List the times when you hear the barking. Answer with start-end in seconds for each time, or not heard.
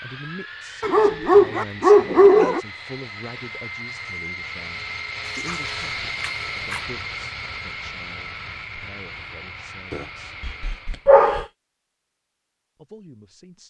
0.8-2.6, 5.2-6.8, 9.9-11.4.